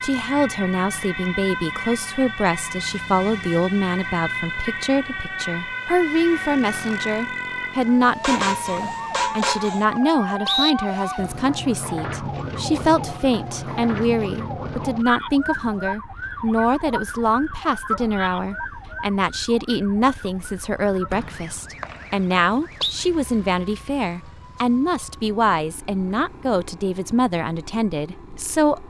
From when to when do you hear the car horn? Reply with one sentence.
You can hear the car horn from 8.2 to 9.8 s.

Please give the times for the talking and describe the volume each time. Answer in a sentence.
The talking can be heard from 0.0 to 28.8 s, at a steady volume.